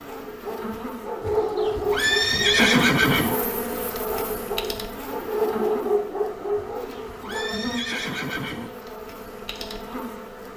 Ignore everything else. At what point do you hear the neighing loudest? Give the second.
3 s.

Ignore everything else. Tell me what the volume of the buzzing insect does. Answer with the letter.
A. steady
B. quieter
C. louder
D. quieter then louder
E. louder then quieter
E.